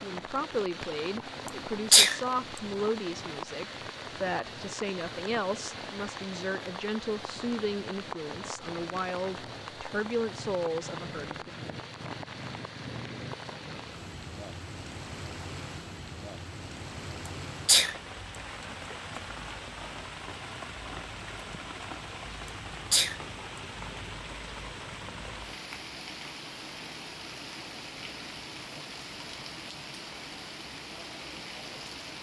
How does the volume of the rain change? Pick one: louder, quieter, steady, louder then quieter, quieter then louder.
steady.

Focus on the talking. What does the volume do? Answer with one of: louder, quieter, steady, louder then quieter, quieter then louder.
steady.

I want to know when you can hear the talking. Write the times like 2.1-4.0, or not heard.
0.0-11.5.